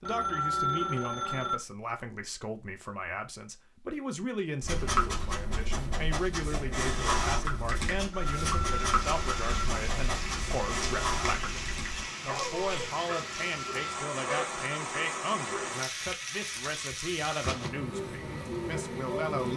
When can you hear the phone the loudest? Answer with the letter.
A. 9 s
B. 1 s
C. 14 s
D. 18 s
B.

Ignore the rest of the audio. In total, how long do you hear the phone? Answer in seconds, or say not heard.
5 s.